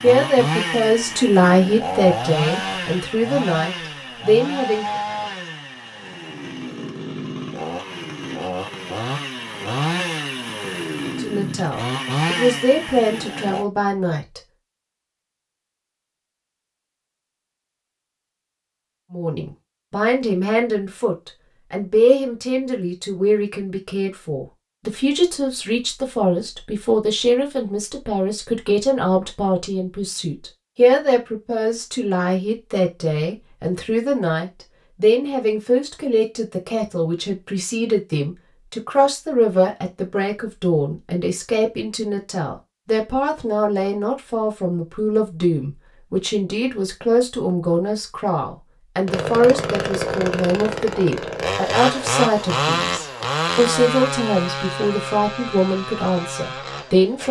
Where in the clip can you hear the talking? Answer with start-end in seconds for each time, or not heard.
0.0-4.8, 11.2-14.4, 19.1-57.2.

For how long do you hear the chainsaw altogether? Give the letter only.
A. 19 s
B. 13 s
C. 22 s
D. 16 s
C.